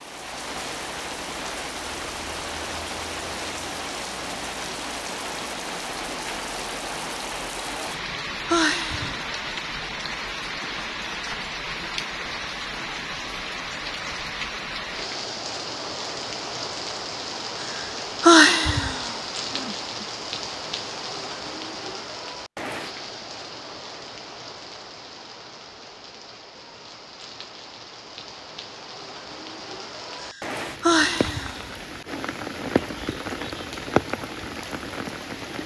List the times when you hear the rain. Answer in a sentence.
You can hear the rain from 0.0 to 35.6 s.